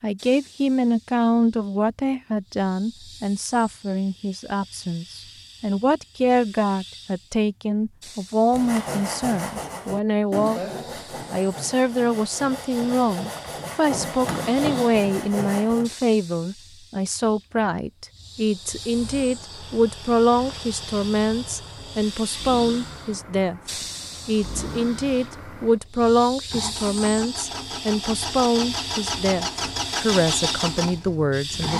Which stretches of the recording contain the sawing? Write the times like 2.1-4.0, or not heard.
8.5-15.9.